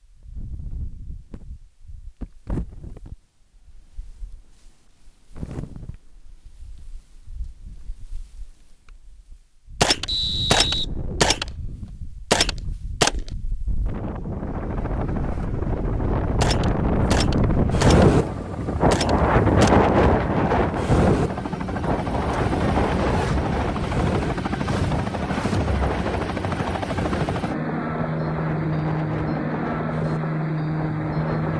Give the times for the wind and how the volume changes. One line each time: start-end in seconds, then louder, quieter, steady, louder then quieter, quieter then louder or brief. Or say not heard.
0.0-31.5 louder then quieter.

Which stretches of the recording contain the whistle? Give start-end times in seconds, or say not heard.
10.1-10.8.